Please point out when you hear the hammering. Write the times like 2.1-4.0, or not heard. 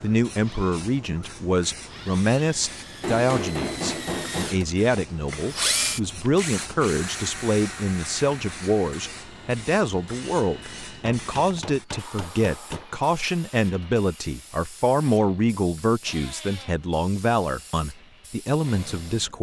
3.0-4.7, 11.1-12.8.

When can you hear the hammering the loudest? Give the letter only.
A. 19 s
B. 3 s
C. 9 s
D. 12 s
B.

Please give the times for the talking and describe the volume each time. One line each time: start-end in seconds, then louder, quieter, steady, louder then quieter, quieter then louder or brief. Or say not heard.
0.0-19.3 steady.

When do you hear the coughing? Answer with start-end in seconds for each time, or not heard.
not heard.